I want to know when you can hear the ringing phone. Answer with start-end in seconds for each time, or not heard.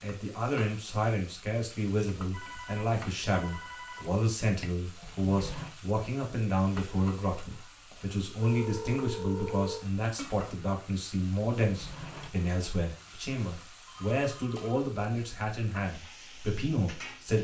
2.3-4.2, 8.3-9.8, 13.8-14.8.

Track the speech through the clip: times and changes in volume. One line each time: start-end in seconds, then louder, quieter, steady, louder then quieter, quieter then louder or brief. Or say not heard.
0.0-17.3 steady.